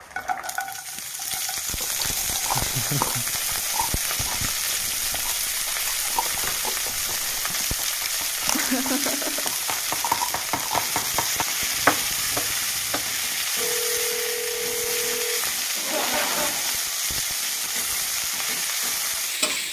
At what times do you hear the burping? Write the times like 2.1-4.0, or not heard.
not heard.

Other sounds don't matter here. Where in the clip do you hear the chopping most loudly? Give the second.
12 s.